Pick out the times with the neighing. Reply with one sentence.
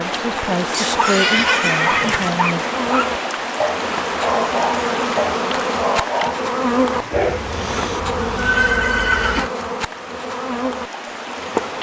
You can hear the neighing from 0.7 to 2.3 s and from 7.1 to 9.5 s.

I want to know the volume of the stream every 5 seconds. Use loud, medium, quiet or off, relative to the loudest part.
loud, loud, medium.